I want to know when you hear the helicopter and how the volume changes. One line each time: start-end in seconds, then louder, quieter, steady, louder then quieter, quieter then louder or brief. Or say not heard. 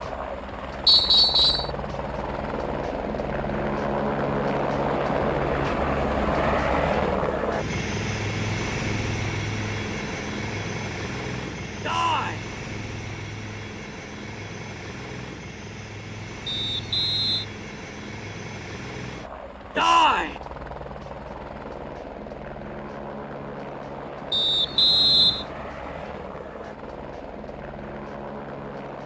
0.0-29.0 quieter.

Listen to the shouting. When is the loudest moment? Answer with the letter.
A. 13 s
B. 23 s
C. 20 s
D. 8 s
C.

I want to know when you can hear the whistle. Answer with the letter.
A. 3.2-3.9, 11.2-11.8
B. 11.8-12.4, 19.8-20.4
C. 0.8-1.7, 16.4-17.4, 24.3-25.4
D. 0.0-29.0
C.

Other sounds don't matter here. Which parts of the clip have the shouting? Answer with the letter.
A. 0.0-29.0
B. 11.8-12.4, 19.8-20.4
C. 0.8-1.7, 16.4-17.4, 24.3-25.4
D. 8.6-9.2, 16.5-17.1
B.